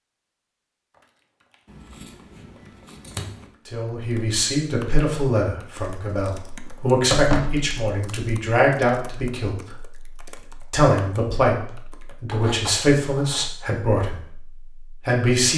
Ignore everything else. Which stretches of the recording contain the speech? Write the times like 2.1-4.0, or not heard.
3.7-9.9, 10.7-14.4, 15.1-15.5.